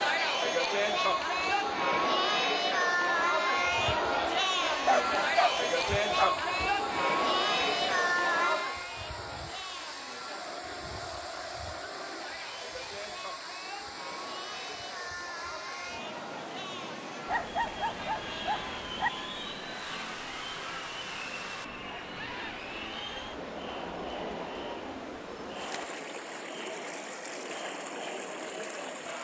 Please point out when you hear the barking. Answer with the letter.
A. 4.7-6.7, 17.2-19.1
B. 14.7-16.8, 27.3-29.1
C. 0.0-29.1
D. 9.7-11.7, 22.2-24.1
A.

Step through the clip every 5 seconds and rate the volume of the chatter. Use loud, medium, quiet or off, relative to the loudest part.
loud, loud, quiet, quiet, quiet, quiet.